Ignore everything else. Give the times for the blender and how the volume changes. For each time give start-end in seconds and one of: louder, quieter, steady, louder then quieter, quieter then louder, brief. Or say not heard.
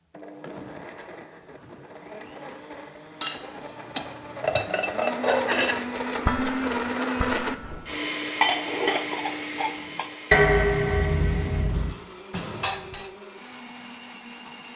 0.1-14.7 louder then quieter.